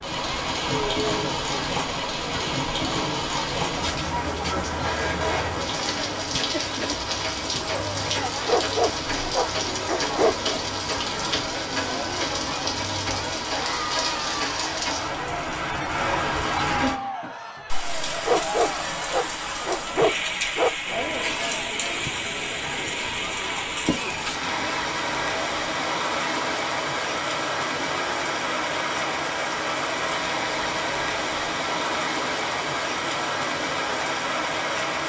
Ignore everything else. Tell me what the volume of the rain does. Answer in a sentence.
The loudness of the rain stays about the same.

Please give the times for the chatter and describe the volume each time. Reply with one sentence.
The chatter can be heard from 0.0 to 35.0 s, at a steady volume.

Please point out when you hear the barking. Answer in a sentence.
The barking can be heard from 8.4 to 10.3 s and from 18.2 to 20.8 s.